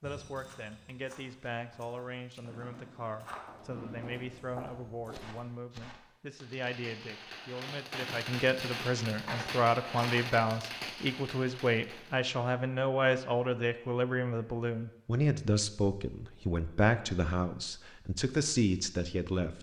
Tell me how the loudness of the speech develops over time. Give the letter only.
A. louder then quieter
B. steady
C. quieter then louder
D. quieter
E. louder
E.